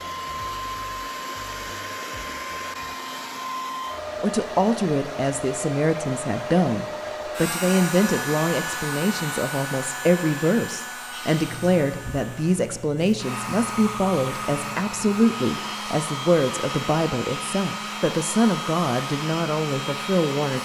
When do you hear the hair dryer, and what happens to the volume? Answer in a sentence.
The hair dryer can be heard from 0.0 to 20.6 s, at a steady volume.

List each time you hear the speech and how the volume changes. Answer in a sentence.
The speech can be heard from 4.2 to 20.6 s, at a steady volume.